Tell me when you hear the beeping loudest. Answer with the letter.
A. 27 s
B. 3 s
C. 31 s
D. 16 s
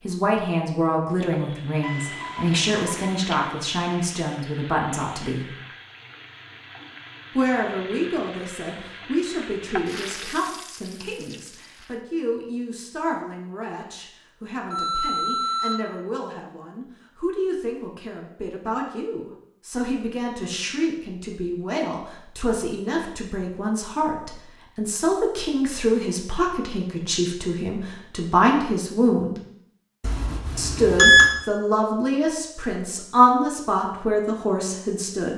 C.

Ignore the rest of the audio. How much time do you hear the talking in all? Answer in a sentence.
The talking can be heard for 32 seconds in total.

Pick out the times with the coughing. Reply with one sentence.
The coughing can't be heard in this clip.